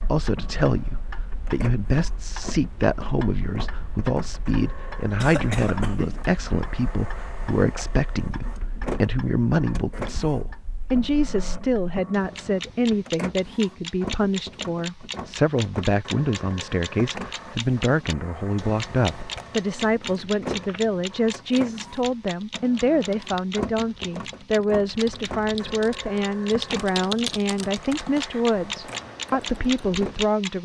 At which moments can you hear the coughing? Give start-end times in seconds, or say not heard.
5.2-6.2.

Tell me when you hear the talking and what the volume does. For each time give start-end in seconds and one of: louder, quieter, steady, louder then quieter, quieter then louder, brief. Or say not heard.
0.0-30.6 steady.